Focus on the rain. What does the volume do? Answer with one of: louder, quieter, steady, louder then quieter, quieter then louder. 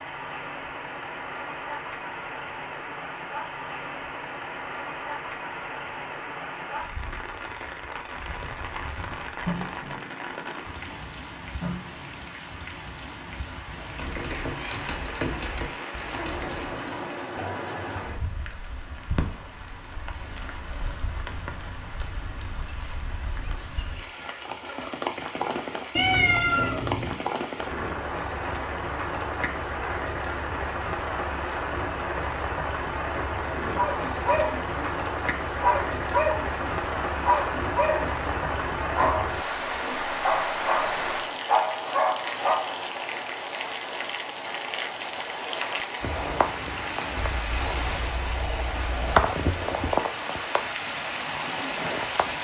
louder.